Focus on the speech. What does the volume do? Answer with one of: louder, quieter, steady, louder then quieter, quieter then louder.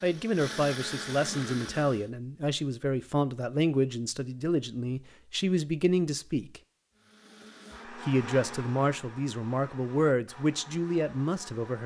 steady.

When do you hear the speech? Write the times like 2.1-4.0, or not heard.
0.0-6.6, 7.9-11.8.